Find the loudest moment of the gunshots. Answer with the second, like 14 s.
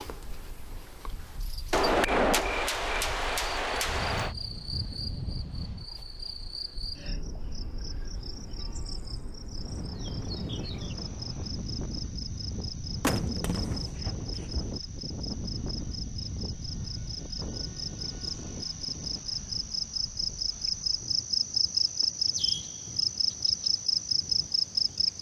2 s.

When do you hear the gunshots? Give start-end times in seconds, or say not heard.
1.7-4.3, 13.0-14.8.